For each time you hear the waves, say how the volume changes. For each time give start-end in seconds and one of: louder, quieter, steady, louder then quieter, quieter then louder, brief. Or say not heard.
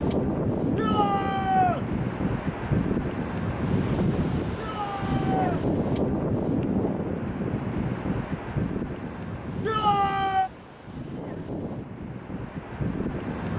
0.0-13.5 quieter.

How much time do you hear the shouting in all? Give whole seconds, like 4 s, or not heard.
3 s.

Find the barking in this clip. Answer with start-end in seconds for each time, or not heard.
not heard.